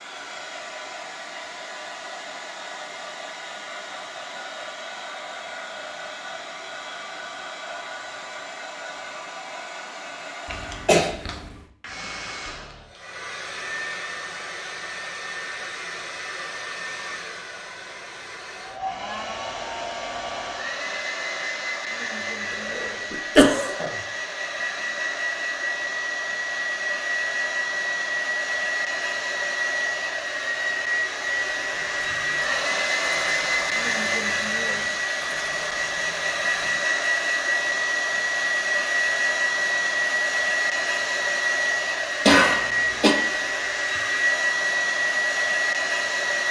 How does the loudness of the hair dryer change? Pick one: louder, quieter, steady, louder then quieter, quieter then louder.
louder.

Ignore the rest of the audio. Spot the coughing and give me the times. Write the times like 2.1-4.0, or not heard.
10.4-11.6, 22.5-23.9, 42.2-43.1.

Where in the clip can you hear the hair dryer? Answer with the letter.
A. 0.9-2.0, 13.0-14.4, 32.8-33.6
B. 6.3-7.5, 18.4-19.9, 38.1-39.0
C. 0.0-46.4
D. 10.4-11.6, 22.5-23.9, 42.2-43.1
C.